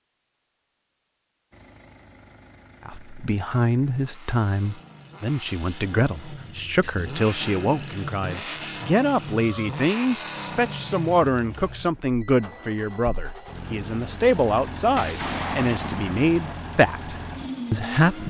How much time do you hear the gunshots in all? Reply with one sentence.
You can hear the gunshots for 2 seconds altogether.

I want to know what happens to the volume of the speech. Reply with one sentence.
The loudness of the speech stays about the same.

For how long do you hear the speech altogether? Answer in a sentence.
The speech can be heard for 15 seconds in total.